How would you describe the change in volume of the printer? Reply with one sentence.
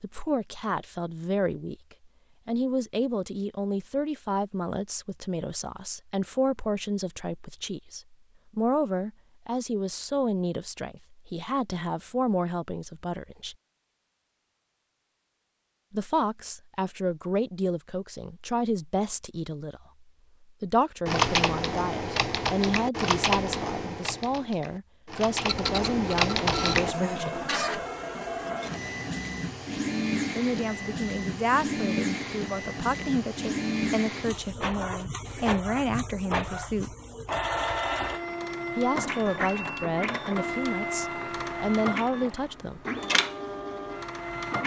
The volume of the printer stays about the same.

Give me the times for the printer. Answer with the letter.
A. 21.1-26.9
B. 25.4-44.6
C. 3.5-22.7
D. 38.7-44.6
B.